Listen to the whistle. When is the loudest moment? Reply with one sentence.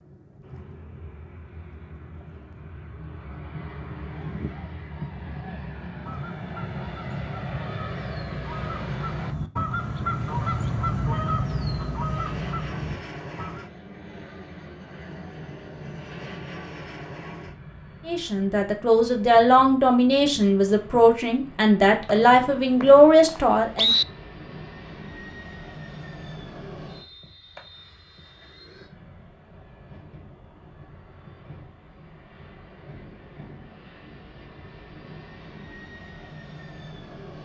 The volume of the whistle peaks at 24 seconds.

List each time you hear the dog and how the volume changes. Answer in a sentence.
You can't hear the dog here.